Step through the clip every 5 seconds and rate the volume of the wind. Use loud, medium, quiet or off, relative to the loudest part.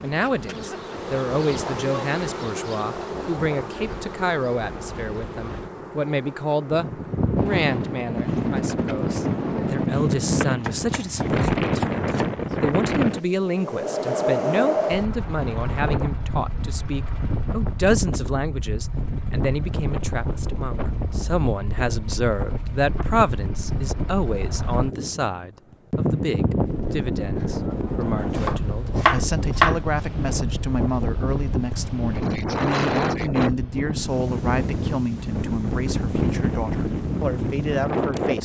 quiet, loud, loud, medium, medium, loud, loud, loud.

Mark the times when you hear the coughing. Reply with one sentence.
The coughing can't be heard in this clip.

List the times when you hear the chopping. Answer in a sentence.
The chopping can be heard from 10.6 to 12.3 s and from 28.2 to 29.8 s.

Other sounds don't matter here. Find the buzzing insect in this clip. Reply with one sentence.
You can hear the buzzing insect from 0.0 to 9.8 s.